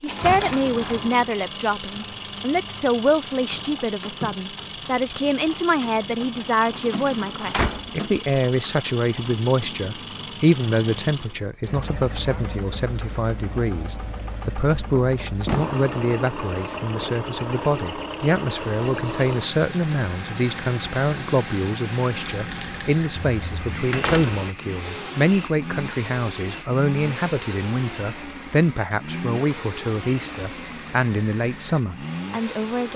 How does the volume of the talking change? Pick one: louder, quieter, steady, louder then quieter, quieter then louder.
steady.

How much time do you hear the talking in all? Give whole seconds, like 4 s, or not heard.
33 s.